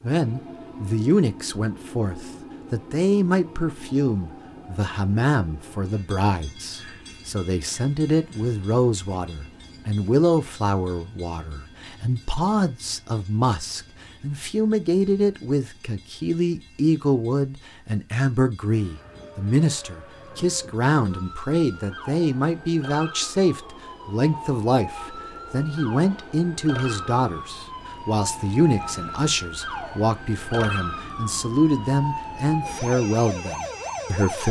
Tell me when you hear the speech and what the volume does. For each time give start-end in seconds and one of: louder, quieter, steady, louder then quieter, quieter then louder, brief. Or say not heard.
0.0-34.4 steady.